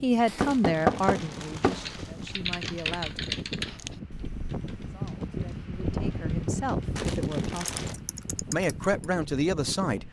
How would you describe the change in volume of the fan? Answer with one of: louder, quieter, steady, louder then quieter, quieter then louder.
louder then quieter.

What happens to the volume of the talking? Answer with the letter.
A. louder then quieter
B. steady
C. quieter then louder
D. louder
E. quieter
C.